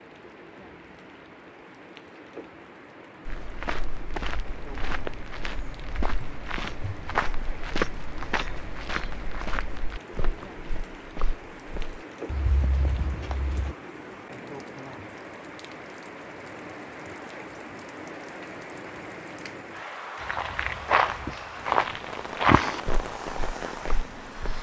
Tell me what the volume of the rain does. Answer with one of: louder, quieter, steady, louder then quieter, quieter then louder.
louder.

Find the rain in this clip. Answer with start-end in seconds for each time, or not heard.
0.0-24.5.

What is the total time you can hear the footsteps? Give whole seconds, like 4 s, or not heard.
15 s.